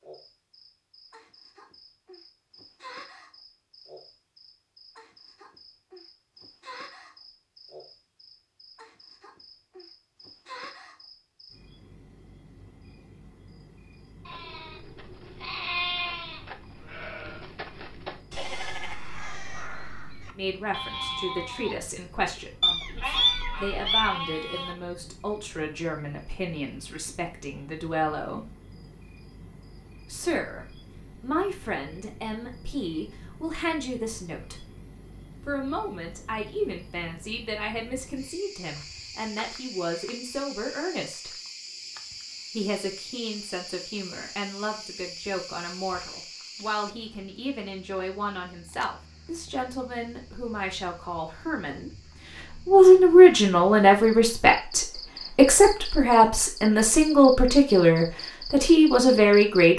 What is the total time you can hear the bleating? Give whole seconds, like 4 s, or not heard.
11 s.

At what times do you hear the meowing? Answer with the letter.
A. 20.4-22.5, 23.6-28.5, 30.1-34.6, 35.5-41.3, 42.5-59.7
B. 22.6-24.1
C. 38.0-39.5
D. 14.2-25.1
B.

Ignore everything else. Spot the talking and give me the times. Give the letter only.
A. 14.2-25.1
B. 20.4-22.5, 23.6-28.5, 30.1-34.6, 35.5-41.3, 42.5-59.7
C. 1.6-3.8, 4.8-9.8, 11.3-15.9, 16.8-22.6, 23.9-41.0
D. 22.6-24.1
B.